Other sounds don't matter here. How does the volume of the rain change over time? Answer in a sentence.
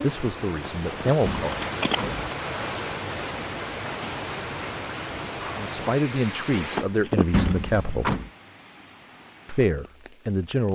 The volume of the rain goes down.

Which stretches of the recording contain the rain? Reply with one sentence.
You can hear the rain from 0.0 to 10.6 s.